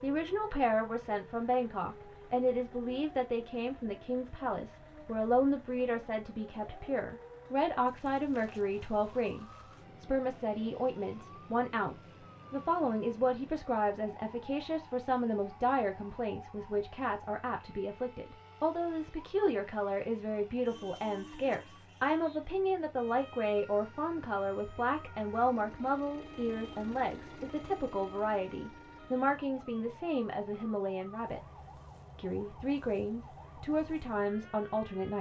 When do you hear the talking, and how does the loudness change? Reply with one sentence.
You can hear the talking from 0.0 to 35.1 s, at a steady volume.